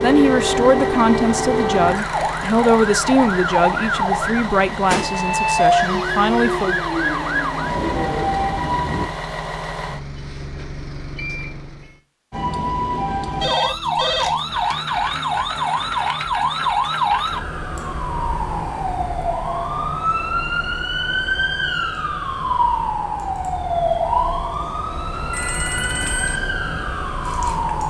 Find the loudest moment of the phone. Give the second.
14 s.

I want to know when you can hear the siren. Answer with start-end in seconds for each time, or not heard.
0.0-9.1, 12.3-27.8.